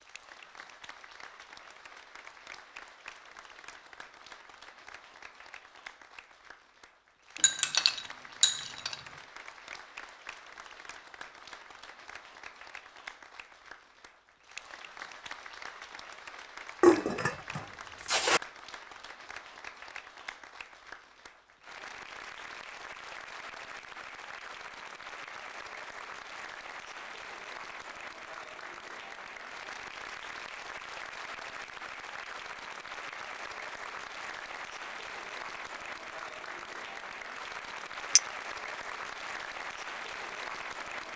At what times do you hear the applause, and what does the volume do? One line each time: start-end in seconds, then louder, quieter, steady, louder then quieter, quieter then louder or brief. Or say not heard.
0.0-41.1 louder.